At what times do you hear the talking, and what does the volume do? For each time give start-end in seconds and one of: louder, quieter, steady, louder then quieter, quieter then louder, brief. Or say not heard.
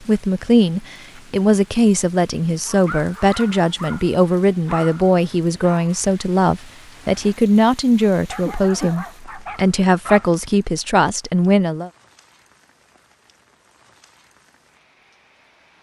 0.1-11.9 steady.